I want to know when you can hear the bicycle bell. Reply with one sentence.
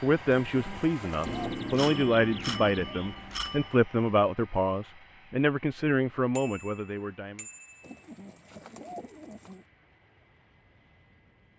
The bicycle bell can be heard from 1.2 to 3.8 s and from 6.3 to 7.9 s.